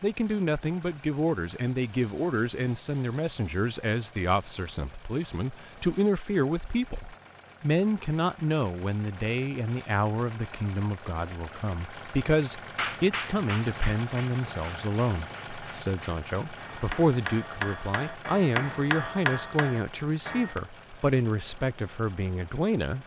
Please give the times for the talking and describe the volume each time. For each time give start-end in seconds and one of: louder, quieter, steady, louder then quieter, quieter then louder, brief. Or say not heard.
0.0-23.0 steady.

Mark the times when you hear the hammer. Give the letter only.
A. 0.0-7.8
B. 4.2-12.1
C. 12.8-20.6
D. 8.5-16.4
C.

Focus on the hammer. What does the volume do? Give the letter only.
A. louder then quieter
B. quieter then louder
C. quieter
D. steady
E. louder
B.